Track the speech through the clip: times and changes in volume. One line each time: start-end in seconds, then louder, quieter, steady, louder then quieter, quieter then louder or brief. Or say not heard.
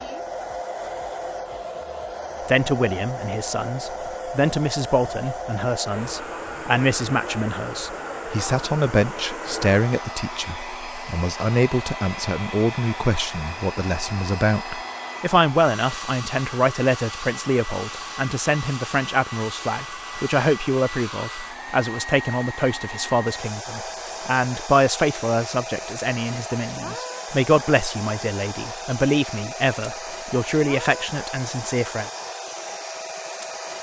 2.4-32.1 steady.